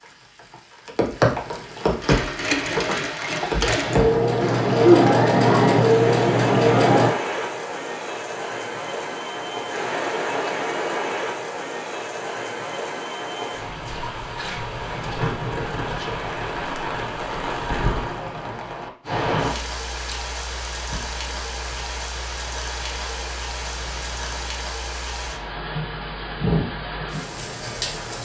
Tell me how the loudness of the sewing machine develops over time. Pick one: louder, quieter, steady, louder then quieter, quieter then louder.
louder.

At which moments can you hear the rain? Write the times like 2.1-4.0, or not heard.
0.0-28.1.